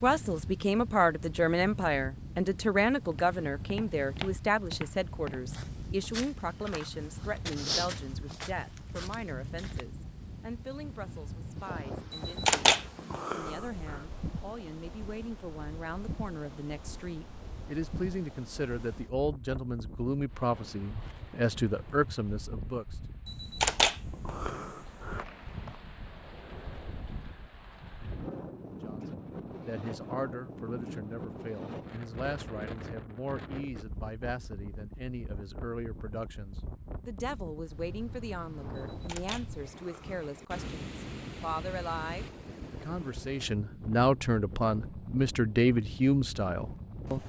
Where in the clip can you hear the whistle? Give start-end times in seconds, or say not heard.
24.4-25.8.